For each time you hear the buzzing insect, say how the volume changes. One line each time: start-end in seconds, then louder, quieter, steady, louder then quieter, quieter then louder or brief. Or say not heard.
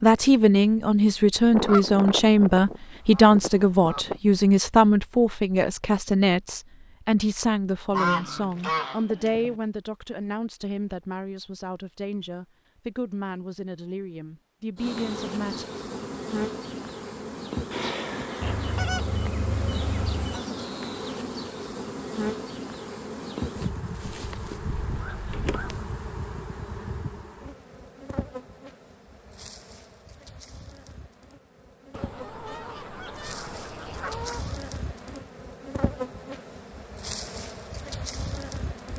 14.8-38.9 quieter then louder.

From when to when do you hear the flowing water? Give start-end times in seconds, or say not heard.
not heard.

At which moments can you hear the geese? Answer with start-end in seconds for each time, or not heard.
1.5-4.2, 7.9-9.6, 18.4-20.4, 24.0-25.9, 31.9-34.5.